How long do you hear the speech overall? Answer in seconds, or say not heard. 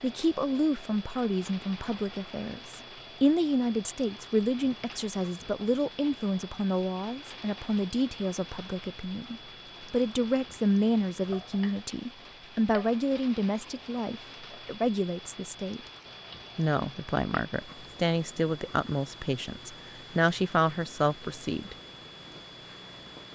21 s.